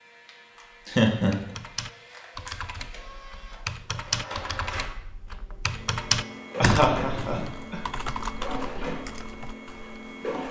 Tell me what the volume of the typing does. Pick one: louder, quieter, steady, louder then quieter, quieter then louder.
louder then quieter.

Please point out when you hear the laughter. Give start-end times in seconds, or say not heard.
0.8-1.4, 6.6-7.8.